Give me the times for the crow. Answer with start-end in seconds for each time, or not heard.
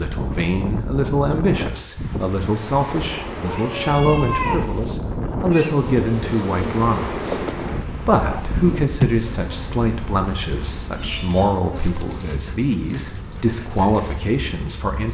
not heard.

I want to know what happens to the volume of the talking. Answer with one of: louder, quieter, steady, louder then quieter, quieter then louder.
steady.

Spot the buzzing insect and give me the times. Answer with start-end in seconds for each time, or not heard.
5.5-15.1.